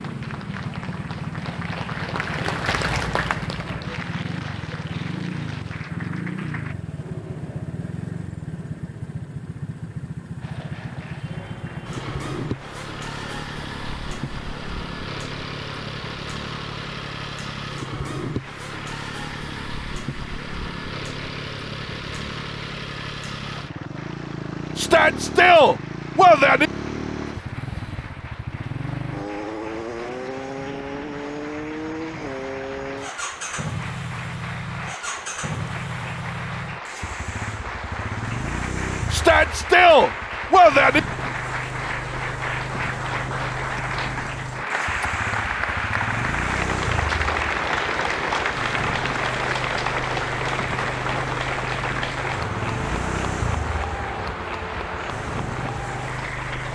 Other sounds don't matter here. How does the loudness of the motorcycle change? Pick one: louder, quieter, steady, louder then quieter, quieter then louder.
steady.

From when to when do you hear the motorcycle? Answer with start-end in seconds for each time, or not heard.
0.0-56.7.